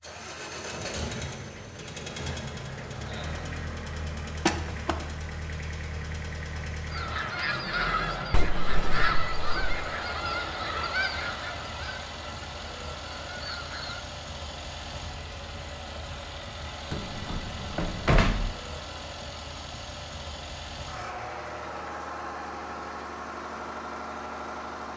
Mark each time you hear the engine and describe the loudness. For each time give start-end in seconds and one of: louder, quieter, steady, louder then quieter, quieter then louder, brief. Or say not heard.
0.0-24.9 steady.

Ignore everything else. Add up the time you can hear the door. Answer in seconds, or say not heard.
4 s.